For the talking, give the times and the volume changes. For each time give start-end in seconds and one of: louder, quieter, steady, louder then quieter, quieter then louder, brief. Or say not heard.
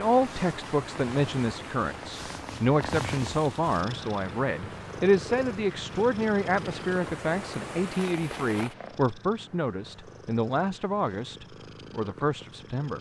0.0-12.9 steady.